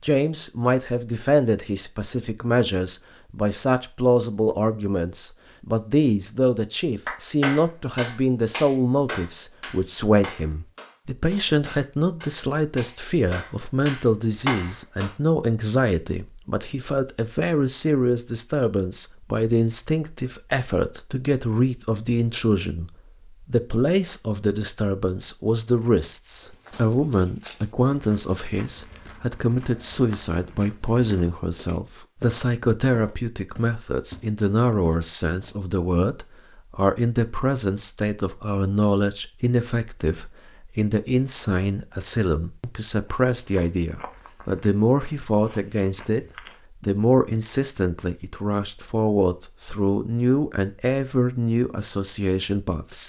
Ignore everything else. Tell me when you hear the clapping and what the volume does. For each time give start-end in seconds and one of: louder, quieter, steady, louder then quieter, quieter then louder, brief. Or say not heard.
7.0-15.1 quieter then louder.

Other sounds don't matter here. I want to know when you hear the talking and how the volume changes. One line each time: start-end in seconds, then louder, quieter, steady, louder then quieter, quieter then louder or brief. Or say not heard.
0.0-53.0 steady.